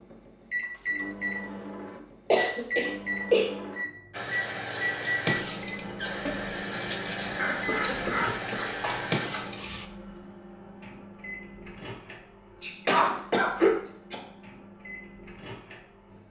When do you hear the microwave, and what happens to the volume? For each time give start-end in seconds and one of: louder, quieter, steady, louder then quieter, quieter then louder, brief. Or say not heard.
0.0-16.2 quieter.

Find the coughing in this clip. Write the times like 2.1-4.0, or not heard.
2.3-3.5, 7.3-9.4, 12.6-14.2.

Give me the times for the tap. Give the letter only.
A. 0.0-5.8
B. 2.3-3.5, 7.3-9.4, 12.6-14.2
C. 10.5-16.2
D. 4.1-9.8
D.